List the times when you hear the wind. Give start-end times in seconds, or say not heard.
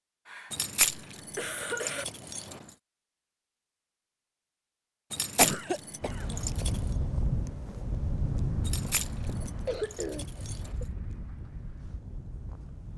6.0-12.9.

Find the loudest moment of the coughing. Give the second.
6 s.